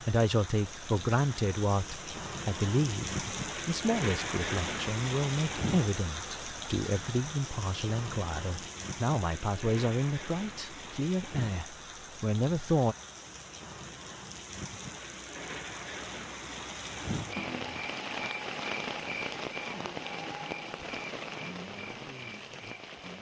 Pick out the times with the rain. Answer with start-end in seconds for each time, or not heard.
0.0-23.1.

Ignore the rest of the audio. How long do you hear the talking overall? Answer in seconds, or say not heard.
13 s.